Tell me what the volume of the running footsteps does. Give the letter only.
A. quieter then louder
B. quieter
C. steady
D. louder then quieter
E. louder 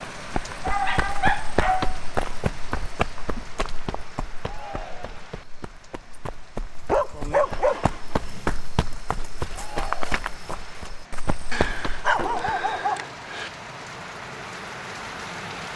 A.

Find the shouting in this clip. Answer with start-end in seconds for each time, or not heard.
4.4-5.3, 9.5-10.2.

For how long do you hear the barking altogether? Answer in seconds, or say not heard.
4 s.